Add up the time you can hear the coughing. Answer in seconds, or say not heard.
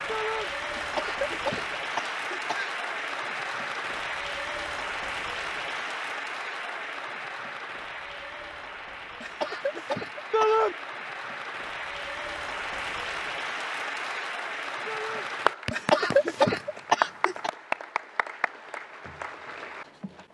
5 s.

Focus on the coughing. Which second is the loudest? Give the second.
16 s.